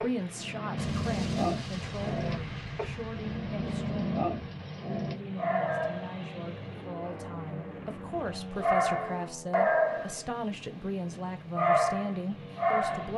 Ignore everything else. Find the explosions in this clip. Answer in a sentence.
You can hear the explosions from 0.8 to 4.7 s.